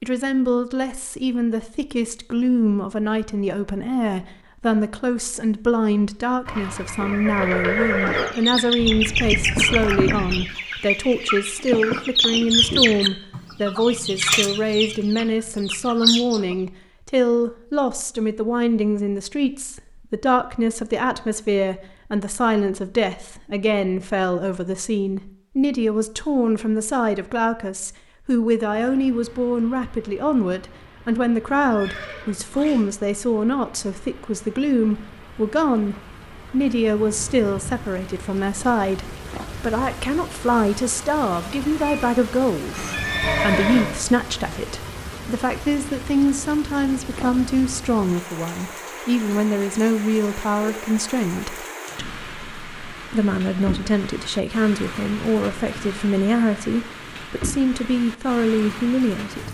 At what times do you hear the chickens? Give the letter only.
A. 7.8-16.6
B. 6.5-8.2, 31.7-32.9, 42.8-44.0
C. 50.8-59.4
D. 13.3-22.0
A.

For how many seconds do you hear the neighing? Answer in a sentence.
The neighing can be heard for 4 seconds in total.